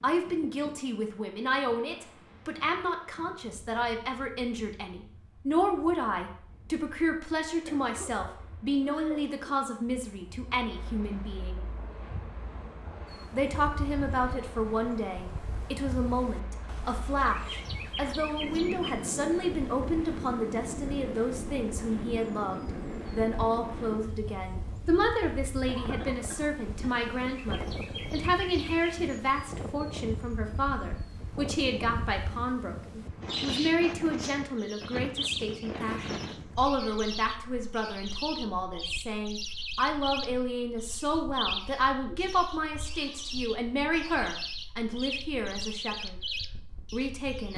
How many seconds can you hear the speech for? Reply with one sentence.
You can hear the speech for 45 seconds altogether.